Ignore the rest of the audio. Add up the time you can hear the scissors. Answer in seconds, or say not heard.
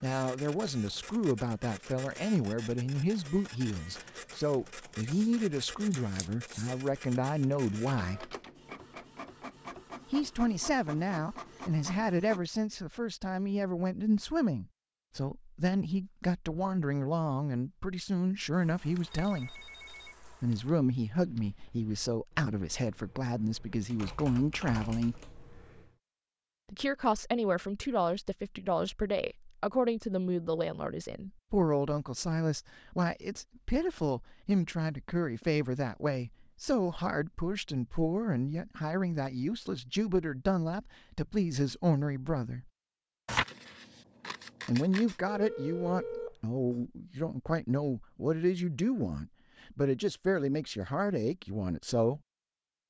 4 s.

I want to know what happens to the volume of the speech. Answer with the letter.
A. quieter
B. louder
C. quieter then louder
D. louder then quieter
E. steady
E.